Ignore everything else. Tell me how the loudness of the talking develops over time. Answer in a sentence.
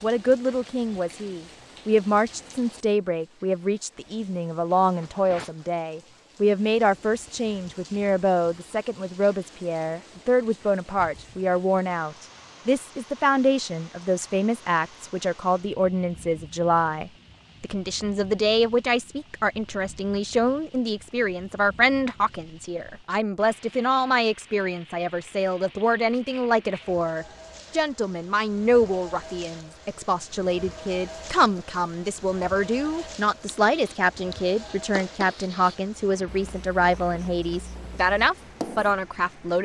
The loudness of the talking stays about the same.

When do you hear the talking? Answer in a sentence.
You can hear the talking from 0.0 to 39.5 s.